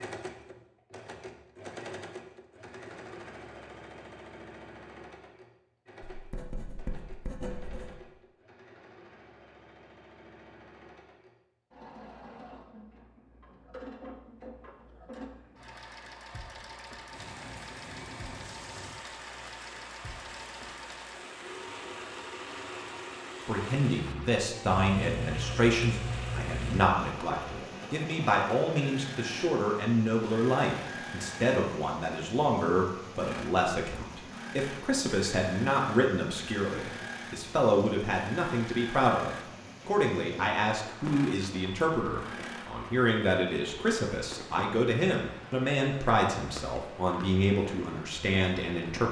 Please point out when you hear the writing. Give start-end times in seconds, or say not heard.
6.1-8.0, 24.9-26.8.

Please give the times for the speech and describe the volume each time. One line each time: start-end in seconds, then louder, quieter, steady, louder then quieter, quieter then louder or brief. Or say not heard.
23.4-49.0 steady.